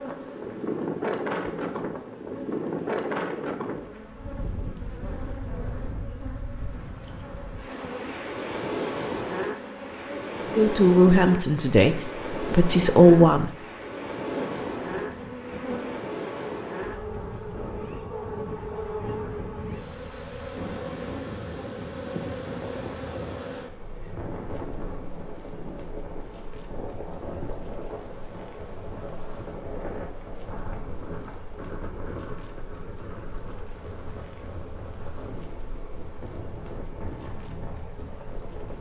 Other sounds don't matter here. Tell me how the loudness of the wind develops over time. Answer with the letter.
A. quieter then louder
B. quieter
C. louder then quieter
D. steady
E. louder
B.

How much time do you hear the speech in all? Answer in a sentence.
The speech can be heard for 3 seconds in total.